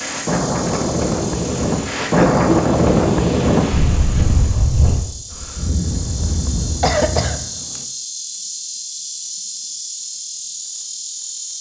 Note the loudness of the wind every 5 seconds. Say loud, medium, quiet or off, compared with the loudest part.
loud, medium, off.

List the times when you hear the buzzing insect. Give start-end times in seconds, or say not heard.
0.0-11.5.